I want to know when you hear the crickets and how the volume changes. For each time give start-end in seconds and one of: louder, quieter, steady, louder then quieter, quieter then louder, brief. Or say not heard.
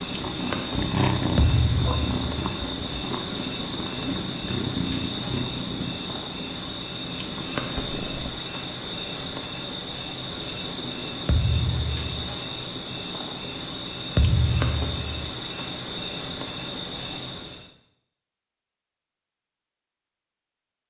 0.0-17.6 steady.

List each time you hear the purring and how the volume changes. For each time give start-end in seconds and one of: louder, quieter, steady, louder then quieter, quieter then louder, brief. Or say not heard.
0.0-8.3 quieter.